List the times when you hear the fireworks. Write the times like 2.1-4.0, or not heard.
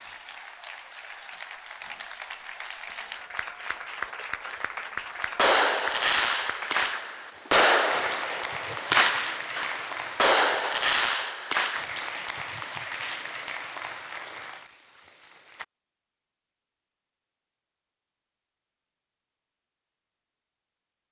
5.2-11.8.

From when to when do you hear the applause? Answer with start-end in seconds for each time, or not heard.
0.0-15.7.